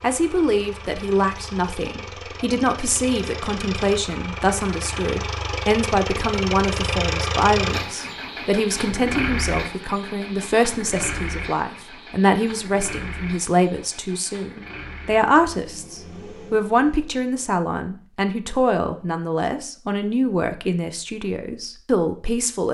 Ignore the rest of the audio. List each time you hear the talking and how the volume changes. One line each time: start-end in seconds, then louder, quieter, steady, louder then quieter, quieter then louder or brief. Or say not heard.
0.0-22.6 steady.